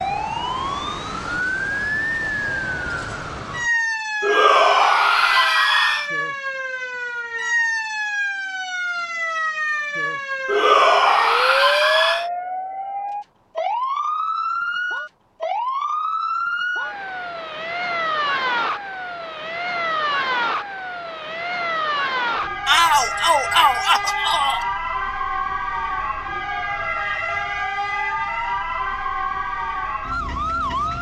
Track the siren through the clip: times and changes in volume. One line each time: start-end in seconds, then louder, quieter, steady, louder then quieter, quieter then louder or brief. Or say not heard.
0.0-30.9 steady.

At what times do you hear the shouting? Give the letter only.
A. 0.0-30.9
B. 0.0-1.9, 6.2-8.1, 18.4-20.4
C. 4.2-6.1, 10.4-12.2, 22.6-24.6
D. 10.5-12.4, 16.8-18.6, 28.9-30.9
C.